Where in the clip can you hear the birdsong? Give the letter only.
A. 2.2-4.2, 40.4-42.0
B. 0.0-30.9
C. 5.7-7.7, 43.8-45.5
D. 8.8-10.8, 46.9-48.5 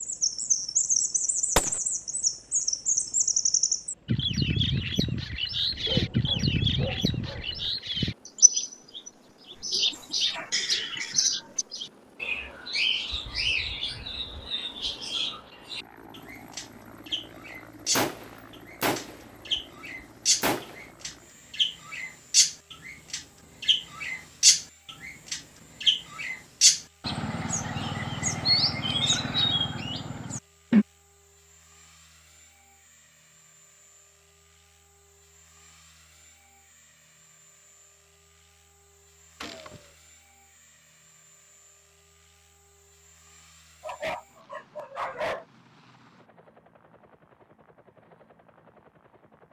B.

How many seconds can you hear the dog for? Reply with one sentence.
You can hear the dog for 4 seconds altogether.